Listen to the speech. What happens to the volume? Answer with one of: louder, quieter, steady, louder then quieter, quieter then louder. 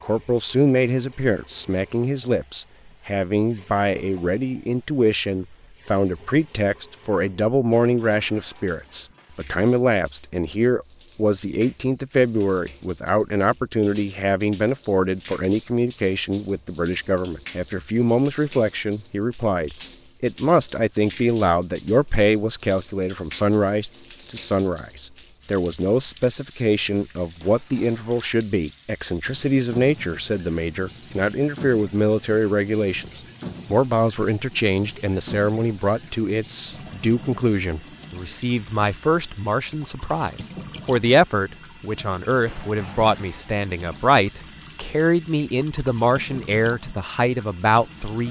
steady.